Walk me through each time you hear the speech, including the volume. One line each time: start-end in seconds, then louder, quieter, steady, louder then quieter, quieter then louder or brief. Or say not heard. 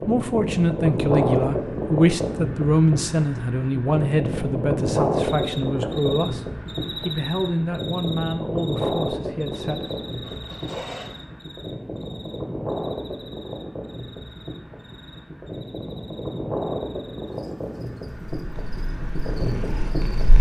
0.0-9.9 quieter.